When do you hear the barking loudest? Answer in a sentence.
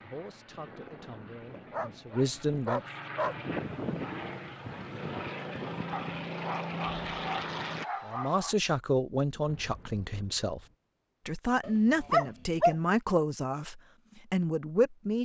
The volume of the barking peaks at 12 seconds.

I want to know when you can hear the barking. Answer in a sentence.
The barking can be heard from 1.5 to 3.4 s, from 5.9 to 8.6 s and from 11.6 to 12.8 s.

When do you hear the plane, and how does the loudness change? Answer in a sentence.
You can hear the plane from 0.0 to 7.8 s, getting louder.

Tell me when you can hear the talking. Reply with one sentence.
The talking can be heard from 0.0 to 2.8 s, from 8.1 to 10.6 s and from 11.2 to 15.2 s.